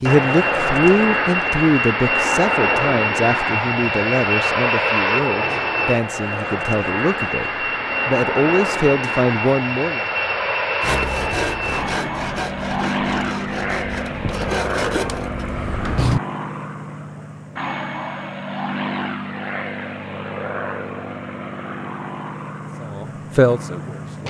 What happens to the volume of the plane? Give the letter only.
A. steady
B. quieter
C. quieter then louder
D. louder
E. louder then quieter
B.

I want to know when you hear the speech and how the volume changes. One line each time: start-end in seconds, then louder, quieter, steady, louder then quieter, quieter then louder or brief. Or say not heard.
0.0-10.1 quieter then louder
22.6-24.2 brief.